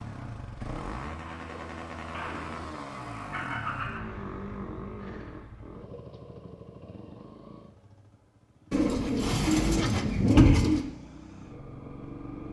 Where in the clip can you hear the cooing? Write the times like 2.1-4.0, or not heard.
1.2-4.0, 8.7-10.8.